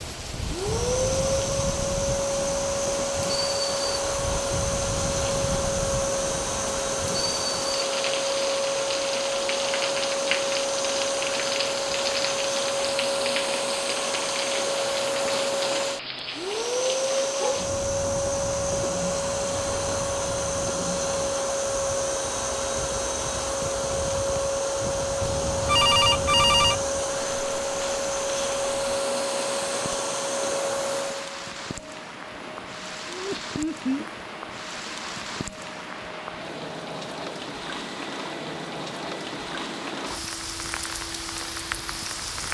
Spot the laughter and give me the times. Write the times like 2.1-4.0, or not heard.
33.1-34.0.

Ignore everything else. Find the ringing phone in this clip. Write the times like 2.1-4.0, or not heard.
25.2-26.9.